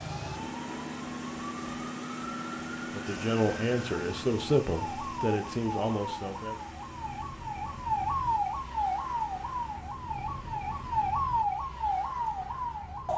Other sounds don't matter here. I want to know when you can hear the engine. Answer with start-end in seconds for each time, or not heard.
0.0-11.1.